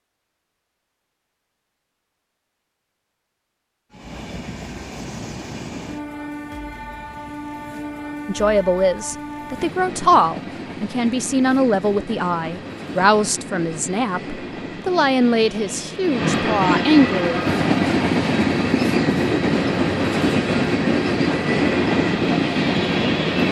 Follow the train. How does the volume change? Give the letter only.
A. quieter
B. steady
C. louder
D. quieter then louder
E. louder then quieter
C.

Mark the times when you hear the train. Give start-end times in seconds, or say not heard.
3.9-23.4.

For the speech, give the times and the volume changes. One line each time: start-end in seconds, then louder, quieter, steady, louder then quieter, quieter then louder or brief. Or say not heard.
8.2-17.6 steady.